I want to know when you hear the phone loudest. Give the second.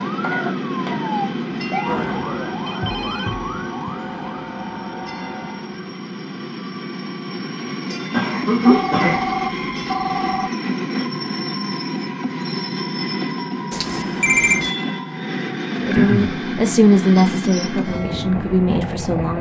14 s.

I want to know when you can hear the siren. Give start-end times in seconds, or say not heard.
0.0-6.0.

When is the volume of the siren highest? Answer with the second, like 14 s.
2 s.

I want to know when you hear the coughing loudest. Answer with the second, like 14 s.
9 s.